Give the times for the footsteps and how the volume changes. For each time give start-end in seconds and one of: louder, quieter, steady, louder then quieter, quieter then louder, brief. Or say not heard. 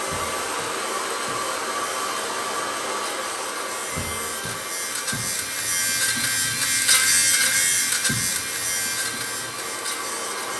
not heard.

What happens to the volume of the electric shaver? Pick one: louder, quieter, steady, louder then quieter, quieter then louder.
louder then quieter.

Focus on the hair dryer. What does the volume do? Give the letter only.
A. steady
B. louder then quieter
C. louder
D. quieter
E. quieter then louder
E.